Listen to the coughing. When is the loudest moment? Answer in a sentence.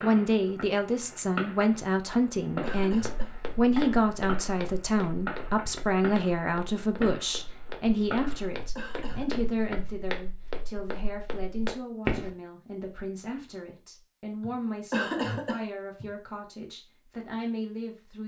The volume of the coughing peaks at 15 seconds.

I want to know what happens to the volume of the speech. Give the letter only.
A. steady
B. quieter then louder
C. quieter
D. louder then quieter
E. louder
C.